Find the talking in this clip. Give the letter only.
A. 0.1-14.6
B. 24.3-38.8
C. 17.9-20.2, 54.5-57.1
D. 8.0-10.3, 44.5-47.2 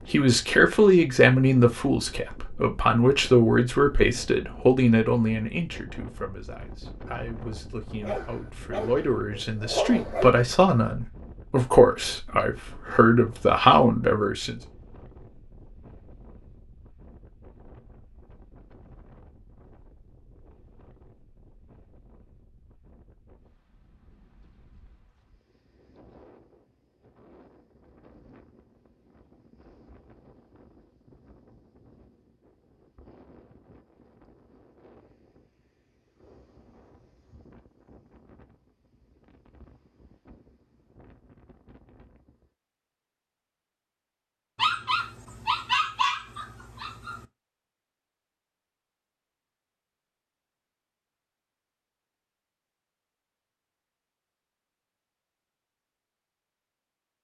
A.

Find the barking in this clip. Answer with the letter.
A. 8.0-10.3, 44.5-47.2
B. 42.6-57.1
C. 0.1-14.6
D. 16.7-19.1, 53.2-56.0
A.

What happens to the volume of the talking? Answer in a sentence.
The loudness of the talking goes down, then up.